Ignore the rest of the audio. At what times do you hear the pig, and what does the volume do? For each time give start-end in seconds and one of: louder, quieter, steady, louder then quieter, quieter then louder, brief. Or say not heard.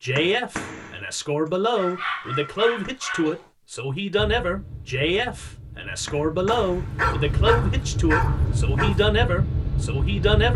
not heard.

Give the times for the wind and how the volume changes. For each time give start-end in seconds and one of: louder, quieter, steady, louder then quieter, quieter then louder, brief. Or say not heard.
4.2-10.5 louder.